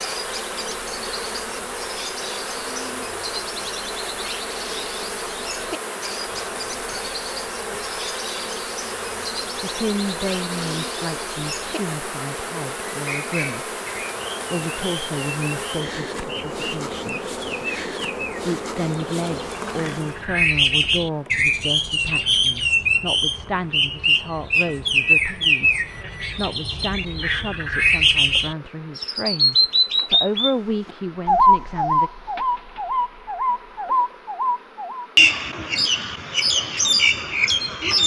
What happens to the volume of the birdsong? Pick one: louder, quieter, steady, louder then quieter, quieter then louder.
louder.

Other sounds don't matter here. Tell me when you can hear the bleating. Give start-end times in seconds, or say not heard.
not heard.